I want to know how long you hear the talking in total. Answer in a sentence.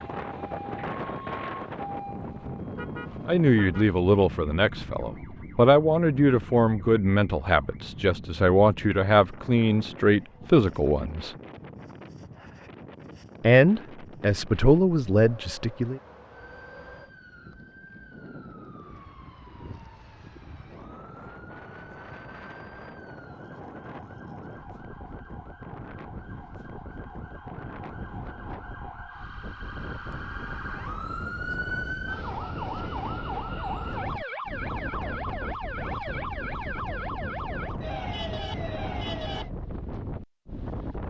The talking can be heard for 11 seconds in total.